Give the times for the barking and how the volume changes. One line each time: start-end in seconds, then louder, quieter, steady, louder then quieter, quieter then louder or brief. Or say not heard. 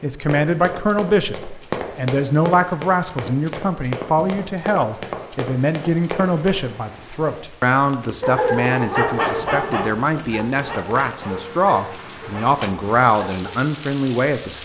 8.2-13.6 quieter.